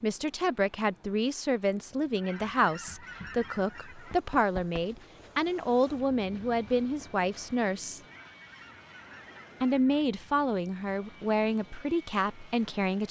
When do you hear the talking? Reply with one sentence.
The talking can be heard from 0.0 to 8.0 s and from 9.6 to 13.0 s.